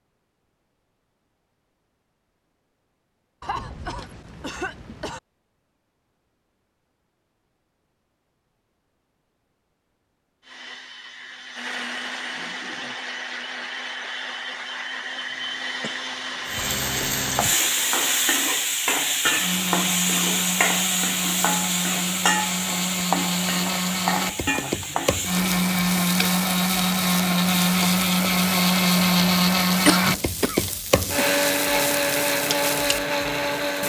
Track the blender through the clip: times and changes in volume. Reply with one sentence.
The blender can be heard from 10.4 to 33.8 s, getting louder.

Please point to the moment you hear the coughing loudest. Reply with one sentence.
The loudest moment of the coughing is at 30 seconds.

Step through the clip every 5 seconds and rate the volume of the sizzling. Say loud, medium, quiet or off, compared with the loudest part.
off, off, off, loud, loud, medium, medium.